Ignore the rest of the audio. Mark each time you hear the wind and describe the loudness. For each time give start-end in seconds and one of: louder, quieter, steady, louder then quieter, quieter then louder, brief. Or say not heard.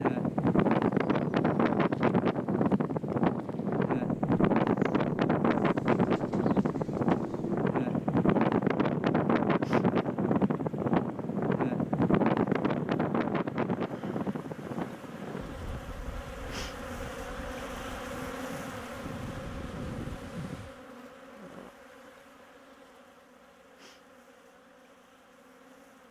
0.0-20.8 quieter.